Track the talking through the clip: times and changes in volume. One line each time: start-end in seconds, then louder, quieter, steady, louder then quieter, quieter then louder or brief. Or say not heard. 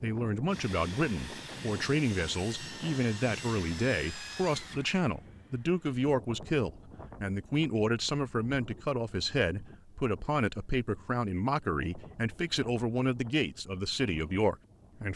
0.0-15.1 steady.